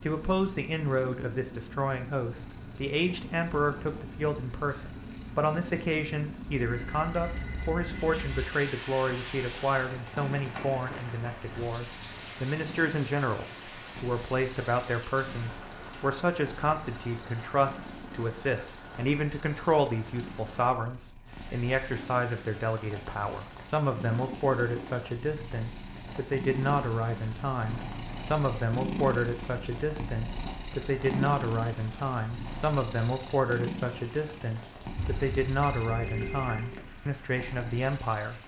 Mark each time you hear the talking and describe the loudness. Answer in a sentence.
The talking can be heard from 0.0 to 38.4 s, at a steady volume.